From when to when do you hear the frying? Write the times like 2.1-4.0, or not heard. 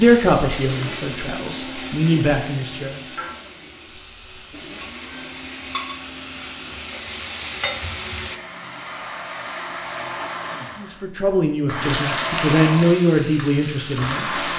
0.0-8.4, 11.8-14.5.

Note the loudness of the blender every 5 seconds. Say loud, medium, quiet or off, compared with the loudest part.
medium, medium, loud.